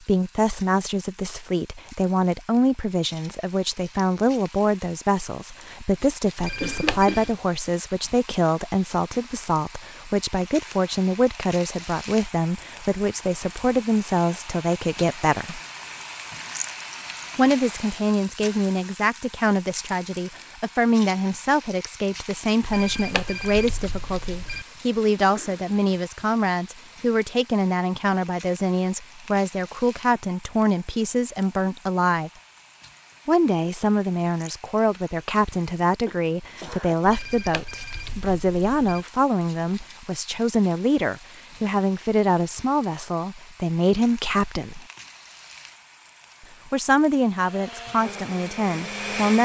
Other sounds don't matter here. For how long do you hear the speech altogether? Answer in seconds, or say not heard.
45 s.